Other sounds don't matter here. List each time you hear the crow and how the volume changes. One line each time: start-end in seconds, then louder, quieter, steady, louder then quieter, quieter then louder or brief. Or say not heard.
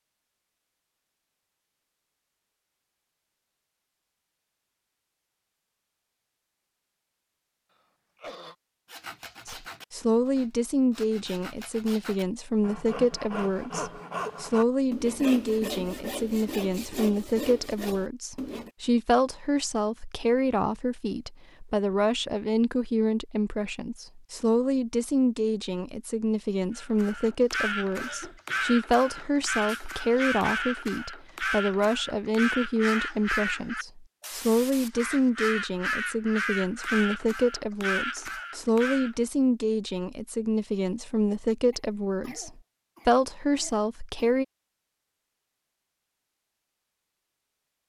26.8-39.1 steady.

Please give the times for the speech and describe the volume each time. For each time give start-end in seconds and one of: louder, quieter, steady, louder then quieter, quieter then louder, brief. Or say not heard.
9.4-44.5 steady.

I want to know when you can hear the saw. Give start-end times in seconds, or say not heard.
8.8-18.7.